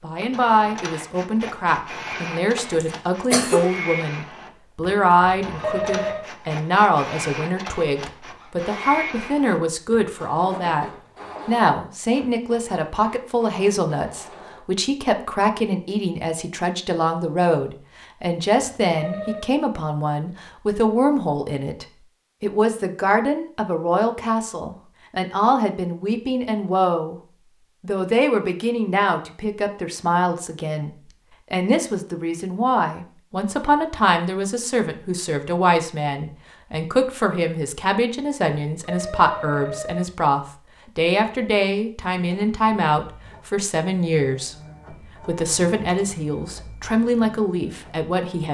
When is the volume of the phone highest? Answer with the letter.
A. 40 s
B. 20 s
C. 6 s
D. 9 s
C.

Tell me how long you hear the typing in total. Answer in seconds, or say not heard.
not heard.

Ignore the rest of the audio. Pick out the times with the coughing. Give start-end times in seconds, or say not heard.
2.7-3.6.